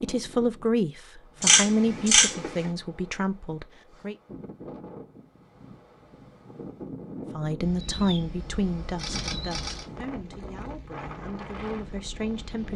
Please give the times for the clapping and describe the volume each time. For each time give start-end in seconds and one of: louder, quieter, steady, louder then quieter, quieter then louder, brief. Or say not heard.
not heard.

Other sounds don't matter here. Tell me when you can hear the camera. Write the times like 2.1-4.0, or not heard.
1.4-2.6, 7.6-9.8.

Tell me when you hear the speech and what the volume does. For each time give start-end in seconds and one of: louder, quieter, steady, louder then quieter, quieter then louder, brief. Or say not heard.
0.0-4.2 quieter
7.3-12.7 quieter then louder.